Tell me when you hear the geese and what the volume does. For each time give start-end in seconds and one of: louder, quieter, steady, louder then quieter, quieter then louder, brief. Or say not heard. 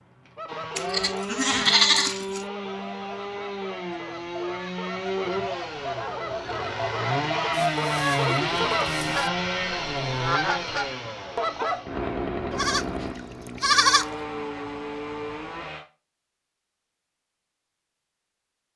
0.3-11.8 louder.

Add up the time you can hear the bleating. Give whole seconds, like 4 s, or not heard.
5 s.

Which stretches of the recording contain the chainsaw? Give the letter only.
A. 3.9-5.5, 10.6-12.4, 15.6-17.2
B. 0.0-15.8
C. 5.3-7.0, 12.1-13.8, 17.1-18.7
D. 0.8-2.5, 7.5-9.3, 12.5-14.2
B.